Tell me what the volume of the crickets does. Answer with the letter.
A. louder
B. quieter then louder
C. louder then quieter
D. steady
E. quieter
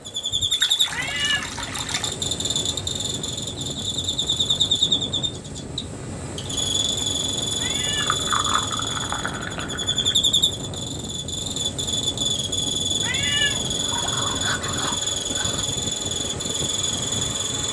D.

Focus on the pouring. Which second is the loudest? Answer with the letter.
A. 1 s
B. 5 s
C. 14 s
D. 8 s
D.